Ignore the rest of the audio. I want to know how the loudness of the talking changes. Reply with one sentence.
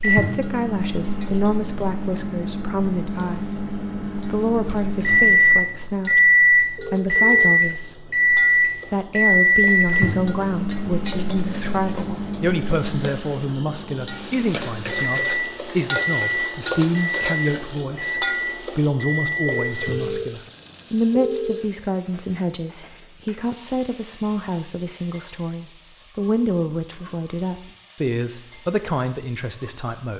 The loudness of the talking stays about the same.